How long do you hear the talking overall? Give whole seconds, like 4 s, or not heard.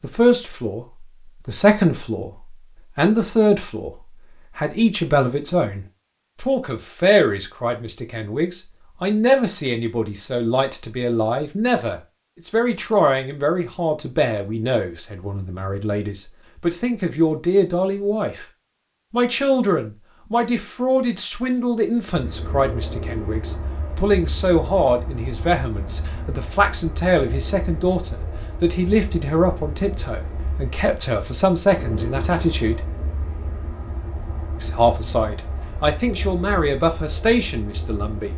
35 s.